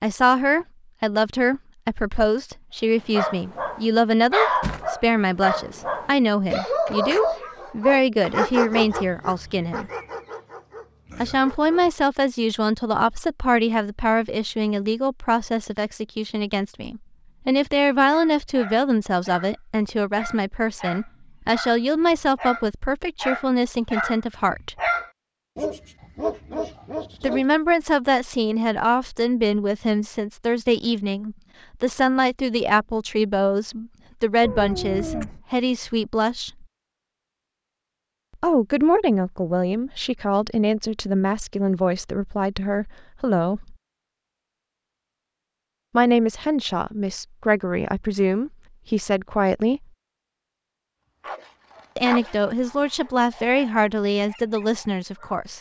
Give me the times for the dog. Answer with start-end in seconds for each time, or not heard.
3.1-11.9, 18.1-27.4, 51.2-55.5.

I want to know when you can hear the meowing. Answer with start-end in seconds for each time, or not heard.
34.4-35.4.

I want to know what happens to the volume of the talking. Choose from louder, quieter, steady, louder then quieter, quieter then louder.
steady.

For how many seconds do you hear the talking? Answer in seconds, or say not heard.
46 s.